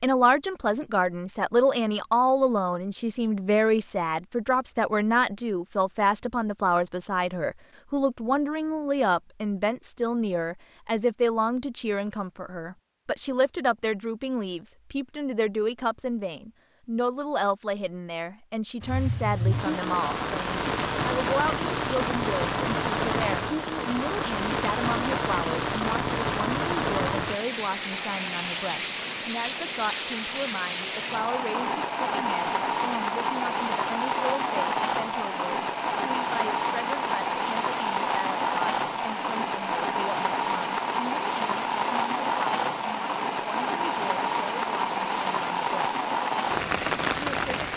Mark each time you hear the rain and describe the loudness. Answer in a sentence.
The rain can be heard from 18.8 to 47.7 s, at a steady volume.